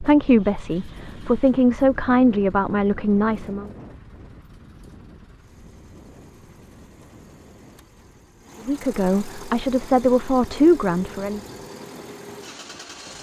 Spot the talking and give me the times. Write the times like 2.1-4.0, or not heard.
0.0-3.7, 8.7-11.4.